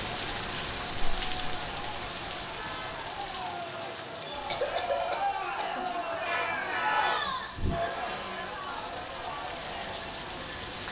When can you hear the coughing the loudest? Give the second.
5 s.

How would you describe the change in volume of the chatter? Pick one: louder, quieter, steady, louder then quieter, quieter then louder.
louder then quieter.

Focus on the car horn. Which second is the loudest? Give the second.
7 s.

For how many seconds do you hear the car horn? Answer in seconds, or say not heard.
2 s.